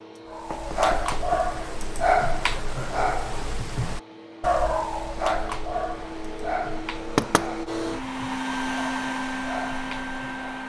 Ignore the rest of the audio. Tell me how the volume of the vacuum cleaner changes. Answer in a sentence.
The volume of the vacuum cleaner goes up.